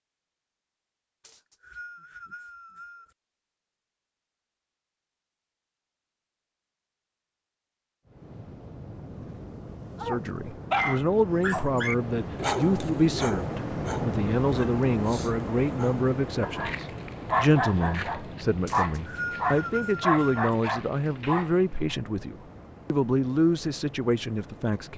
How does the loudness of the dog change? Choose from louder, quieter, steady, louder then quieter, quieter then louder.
quieter then louder.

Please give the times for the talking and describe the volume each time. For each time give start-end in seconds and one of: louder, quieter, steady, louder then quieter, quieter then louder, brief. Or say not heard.
10.1-24.9 steady.